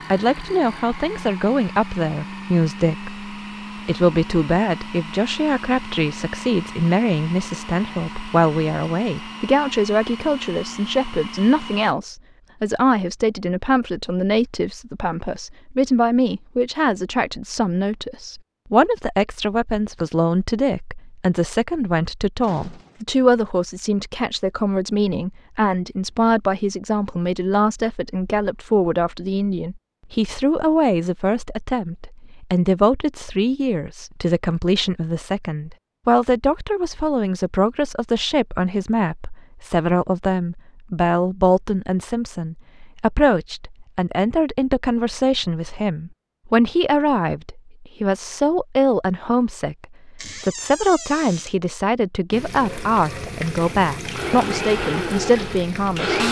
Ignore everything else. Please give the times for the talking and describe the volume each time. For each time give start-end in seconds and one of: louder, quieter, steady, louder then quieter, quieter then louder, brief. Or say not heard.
0.1-56.2 steady.